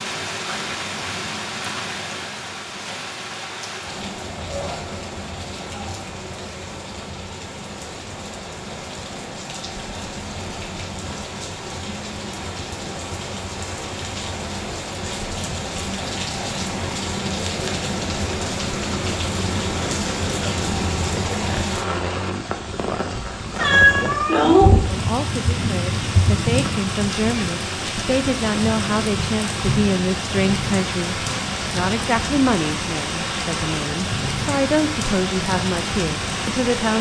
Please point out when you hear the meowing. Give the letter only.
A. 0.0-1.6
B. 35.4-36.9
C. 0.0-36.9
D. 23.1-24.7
D.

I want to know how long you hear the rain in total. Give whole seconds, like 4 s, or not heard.
37 s.